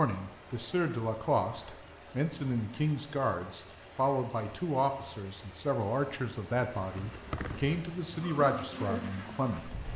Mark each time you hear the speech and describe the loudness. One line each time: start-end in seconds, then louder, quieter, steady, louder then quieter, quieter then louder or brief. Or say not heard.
0.0-9.8 steady.